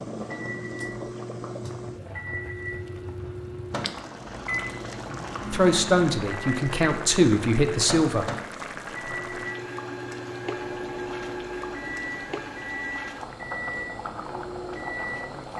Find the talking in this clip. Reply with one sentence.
The talking can be heard from 5.5 to 8.3 s.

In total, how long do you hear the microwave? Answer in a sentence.
You can hear the microwave for 15 seconds altogether.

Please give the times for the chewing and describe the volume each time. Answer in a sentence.
You can't hear the chewing here.